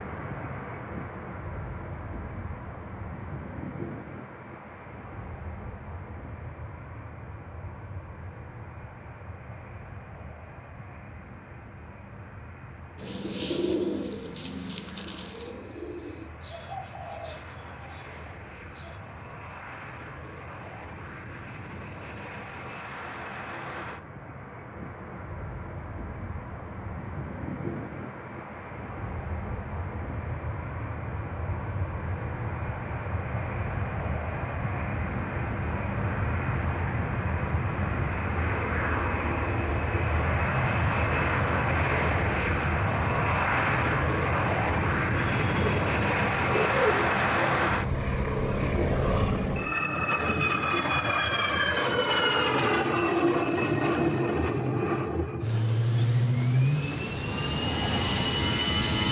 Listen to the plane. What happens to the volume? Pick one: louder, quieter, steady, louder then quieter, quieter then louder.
louder.